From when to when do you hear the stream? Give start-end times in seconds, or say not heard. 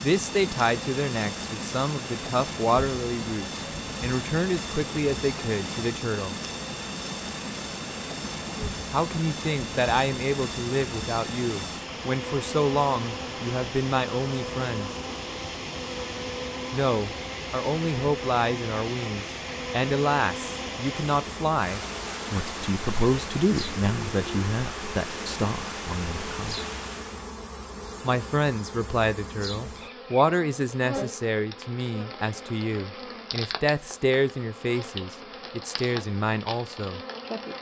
0.0-27.4.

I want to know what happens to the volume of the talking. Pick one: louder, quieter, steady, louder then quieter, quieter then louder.
steady.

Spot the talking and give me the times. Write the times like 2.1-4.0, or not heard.
0.0-6.3, 8.9-14.9, 16.7-26.6, 28.0-37.0.